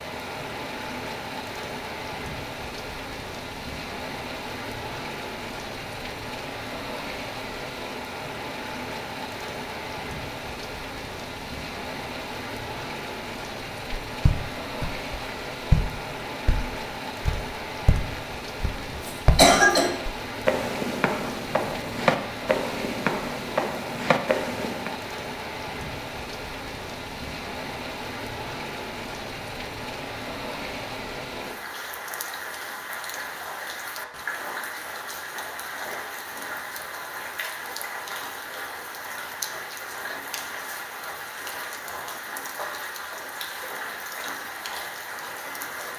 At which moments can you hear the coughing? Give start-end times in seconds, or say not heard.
18.9-19.9.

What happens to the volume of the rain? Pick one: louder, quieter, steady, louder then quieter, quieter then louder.
steady.